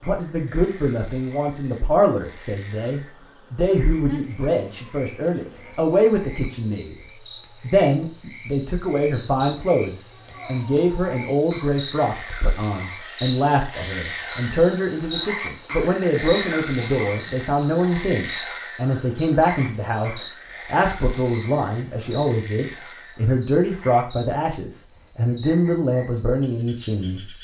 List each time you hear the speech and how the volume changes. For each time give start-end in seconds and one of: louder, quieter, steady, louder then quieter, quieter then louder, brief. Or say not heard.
0.0-27.3 steady.